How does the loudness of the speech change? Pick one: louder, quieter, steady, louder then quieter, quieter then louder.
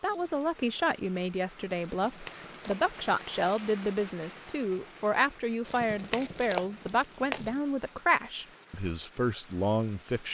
steady.